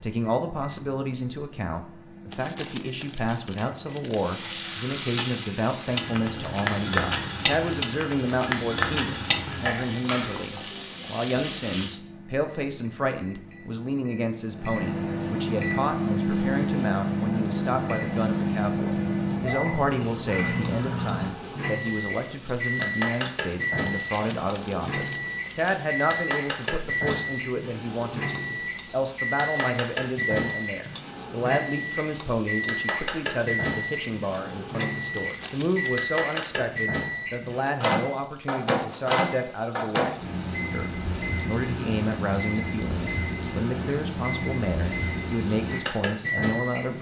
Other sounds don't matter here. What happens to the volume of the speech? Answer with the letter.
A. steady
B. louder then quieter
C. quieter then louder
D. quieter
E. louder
A.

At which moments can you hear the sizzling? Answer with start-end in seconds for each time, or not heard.
4.2-12.0, 14.9-46.9.